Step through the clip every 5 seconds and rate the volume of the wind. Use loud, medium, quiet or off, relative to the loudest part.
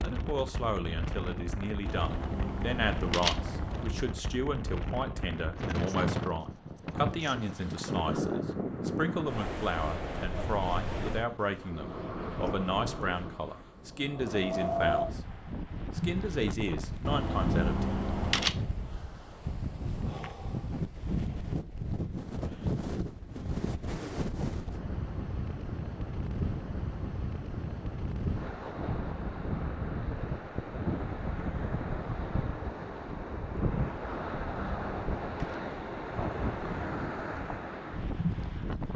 medium, loud, loud, loud, loud, loud, loud, loud.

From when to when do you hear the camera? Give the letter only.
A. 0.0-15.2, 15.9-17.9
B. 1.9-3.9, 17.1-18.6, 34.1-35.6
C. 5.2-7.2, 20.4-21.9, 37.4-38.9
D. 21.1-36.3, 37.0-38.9
B.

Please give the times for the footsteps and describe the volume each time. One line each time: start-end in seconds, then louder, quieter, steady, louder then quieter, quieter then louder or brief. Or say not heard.
not heard.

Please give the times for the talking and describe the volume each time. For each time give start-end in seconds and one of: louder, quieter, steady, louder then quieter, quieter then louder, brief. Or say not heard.
0.0-15.2 steady
15.9-17.9 brief.